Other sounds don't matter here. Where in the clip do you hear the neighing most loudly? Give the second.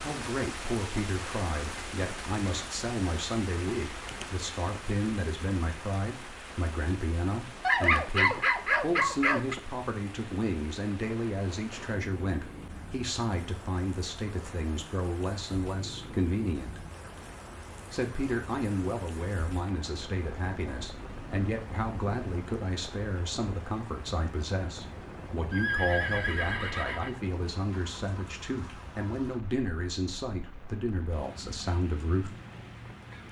26 s.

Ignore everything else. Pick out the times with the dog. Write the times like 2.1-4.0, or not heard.
7.6-9.6.